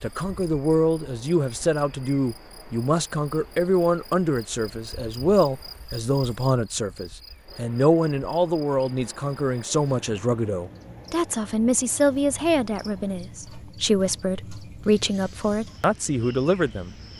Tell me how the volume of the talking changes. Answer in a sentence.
The loudness of the talking stays about the same.